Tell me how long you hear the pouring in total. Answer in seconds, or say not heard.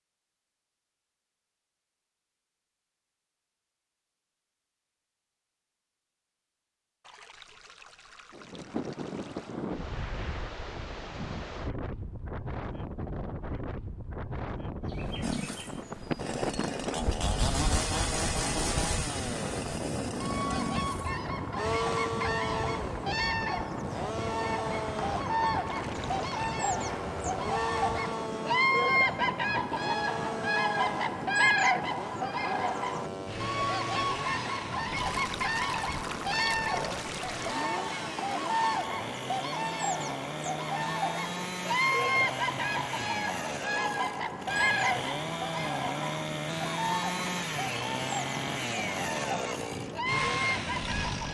6 s.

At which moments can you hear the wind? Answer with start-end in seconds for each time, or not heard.
8.3-51.2.